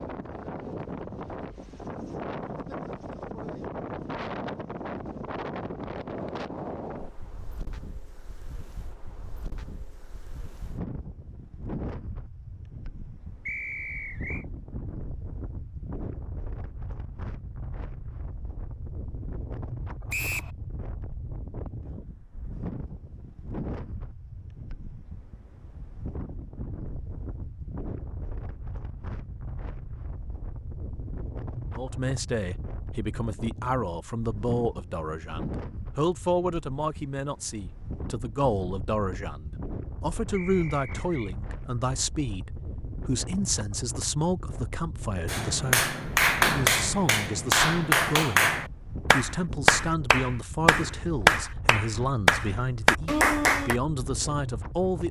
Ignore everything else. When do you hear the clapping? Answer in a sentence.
The clapping can be heard from 45.2 to 53.8 s.